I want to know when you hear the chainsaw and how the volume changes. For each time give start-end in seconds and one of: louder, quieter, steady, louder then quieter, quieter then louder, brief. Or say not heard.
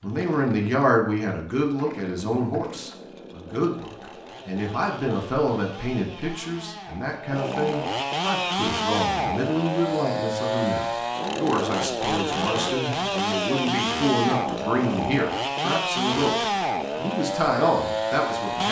0.0-18.6 louder.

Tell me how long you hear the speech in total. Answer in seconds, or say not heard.
18 s.